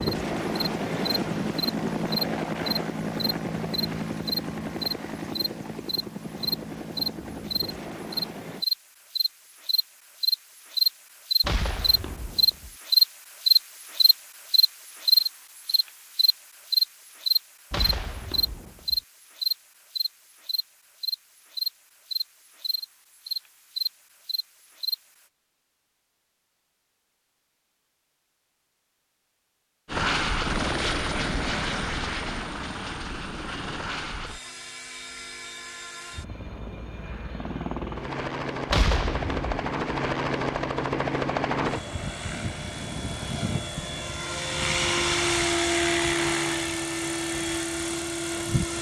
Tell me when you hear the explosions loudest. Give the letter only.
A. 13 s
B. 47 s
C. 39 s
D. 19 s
C.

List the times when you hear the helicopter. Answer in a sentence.
You can hear the helicopter from 0.0 to 8.7 s and from 29.9 to 48.7 s.